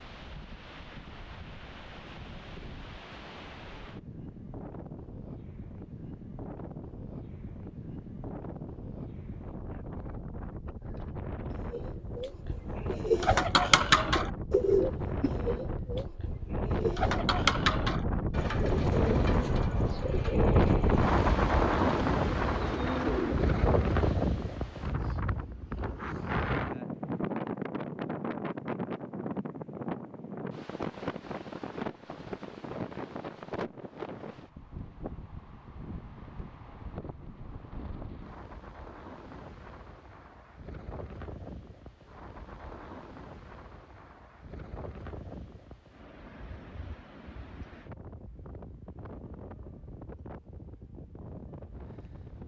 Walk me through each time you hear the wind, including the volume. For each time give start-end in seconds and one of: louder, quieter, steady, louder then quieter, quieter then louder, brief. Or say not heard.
0.0-52.4 louder then quieter.